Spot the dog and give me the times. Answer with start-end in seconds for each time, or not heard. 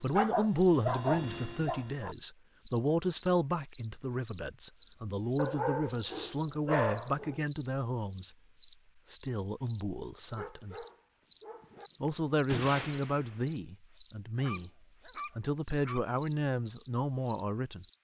0.1-2.1, 5.3-7.3, 10.3-11.9, 14.3-16.1.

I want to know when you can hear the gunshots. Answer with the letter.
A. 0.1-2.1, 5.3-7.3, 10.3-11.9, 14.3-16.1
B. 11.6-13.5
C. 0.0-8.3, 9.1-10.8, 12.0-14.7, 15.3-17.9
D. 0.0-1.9
B.